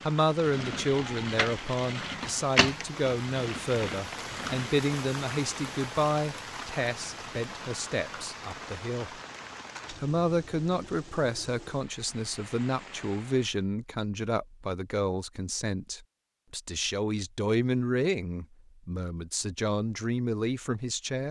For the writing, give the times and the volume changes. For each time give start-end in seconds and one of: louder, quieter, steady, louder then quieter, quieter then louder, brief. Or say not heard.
not heard.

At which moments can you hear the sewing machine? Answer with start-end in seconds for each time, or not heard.
0.0-4.8.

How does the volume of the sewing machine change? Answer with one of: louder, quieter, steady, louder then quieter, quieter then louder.
louder then quieter.